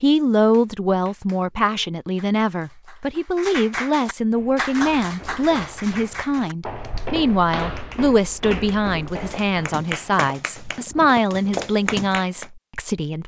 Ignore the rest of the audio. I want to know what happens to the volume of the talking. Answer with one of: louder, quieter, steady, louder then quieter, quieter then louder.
steady.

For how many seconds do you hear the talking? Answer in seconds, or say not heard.
13 s.